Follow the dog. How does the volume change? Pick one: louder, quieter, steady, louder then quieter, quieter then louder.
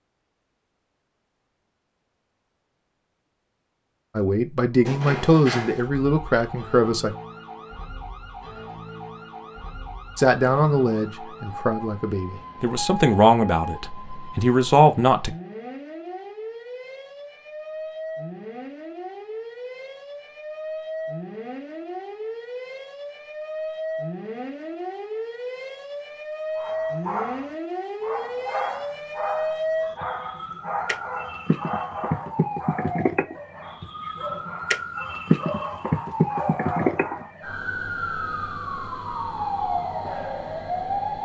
quieter then louder.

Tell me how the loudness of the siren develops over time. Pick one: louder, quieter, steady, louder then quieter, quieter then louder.
louder.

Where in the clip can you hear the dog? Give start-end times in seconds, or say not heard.
26.6-37.5.